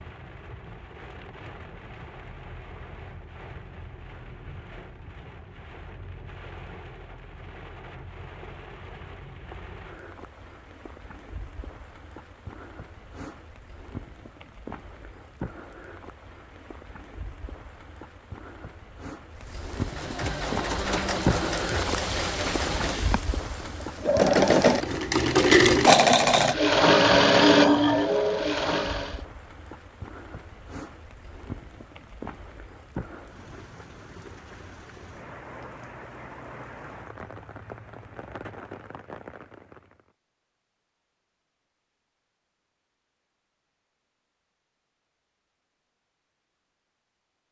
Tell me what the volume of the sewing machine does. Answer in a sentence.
The volume of the sewing machine goes up.